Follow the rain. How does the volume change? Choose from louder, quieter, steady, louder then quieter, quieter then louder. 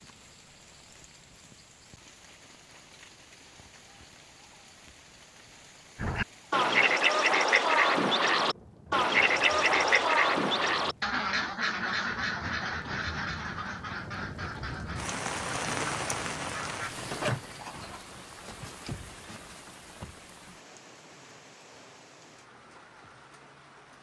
louder then quieter.